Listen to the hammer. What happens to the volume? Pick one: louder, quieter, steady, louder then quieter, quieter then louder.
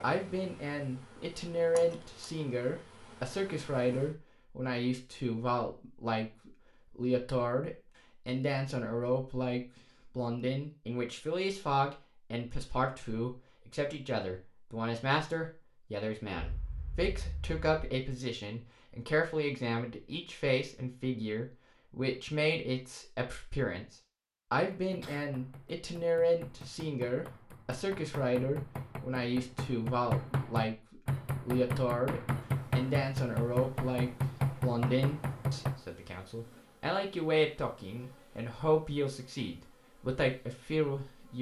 louder.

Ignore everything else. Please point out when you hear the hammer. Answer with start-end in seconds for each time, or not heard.
24.7-35.8.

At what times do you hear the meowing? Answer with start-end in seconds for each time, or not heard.
not heard.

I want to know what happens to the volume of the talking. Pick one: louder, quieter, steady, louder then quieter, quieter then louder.
steady.